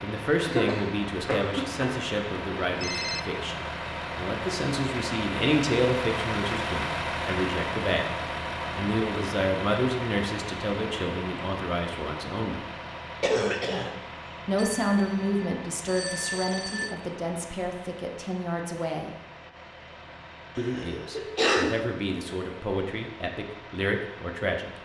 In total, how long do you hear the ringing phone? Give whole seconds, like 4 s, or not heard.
3 s.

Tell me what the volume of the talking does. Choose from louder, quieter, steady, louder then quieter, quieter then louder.
steady.